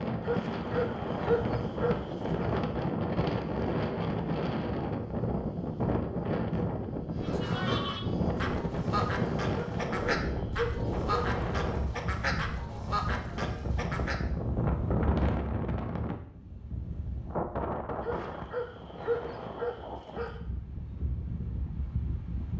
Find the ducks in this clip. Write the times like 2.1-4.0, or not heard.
7.2-14.2.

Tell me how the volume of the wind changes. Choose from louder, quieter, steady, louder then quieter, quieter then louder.
quieter.